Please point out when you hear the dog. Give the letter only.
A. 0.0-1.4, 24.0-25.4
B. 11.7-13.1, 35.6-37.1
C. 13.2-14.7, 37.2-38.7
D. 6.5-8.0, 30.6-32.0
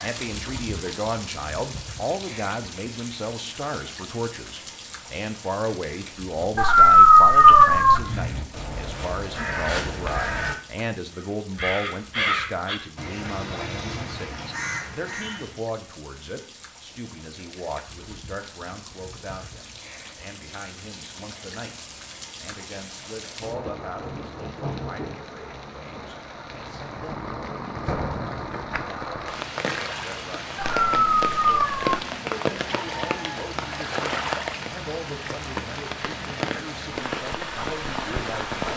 D.